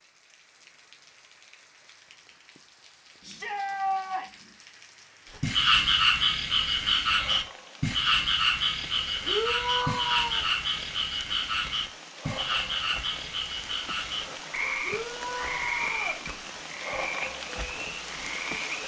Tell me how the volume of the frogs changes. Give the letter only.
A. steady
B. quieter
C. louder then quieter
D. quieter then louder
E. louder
B.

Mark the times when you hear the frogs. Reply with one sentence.
You can hear the frogs from 5.4 to 18.8 s.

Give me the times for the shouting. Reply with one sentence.
The shouting can be heard from 3.2 to 4.5 s, from 9.2 to 10.4 s and from 14.8 to 16.2 s.